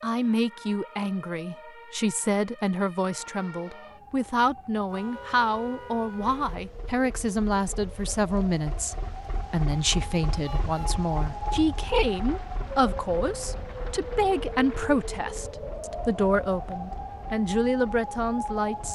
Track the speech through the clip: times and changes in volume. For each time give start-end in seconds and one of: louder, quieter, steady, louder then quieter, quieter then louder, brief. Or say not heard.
0.0-18.8 steady.